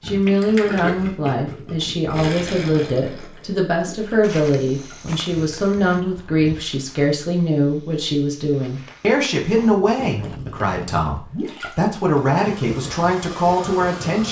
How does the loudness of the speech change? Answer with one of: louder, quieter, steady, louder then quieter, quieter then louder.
steady.